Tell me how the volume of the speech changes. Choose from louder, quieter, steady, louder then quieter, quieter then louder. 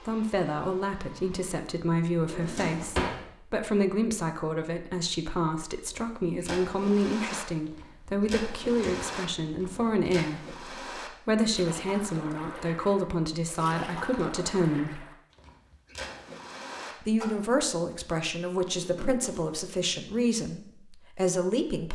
steady.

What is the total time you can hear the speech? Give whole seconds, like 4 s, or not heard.
20 s.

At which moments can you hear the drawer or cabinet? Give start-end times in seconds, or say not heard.
2.2-3.2, 8.7-9.9, 18.6-19.9.